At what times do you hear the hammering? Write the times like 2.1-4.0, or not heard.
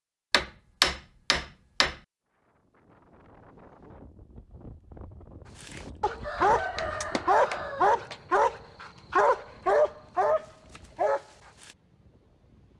0.3-1.9, 6.4-8.2.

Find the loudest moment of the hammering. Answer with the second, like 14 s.
1 s.